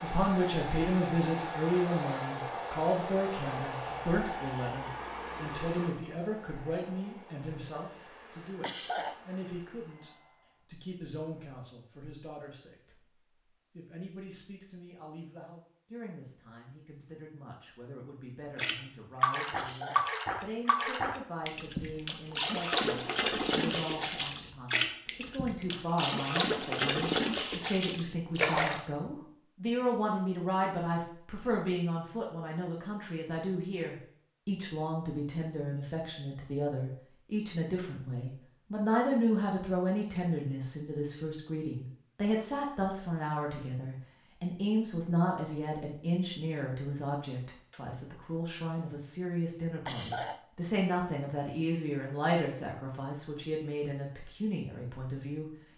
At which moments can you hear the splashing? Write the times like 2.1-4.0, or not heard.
18.6-28.9.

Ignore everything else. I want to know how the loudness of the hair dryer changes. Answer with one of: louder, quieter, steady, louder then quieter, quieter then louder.
quieter.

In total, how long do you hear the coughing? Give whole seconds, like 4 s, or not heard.
2 s.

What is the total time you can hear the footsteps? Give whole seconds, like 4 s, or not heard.
not heard.